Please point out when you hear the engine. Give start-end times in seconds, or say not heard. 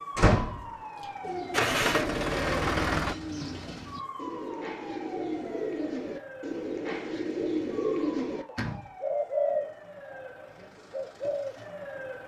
1.5-3.1.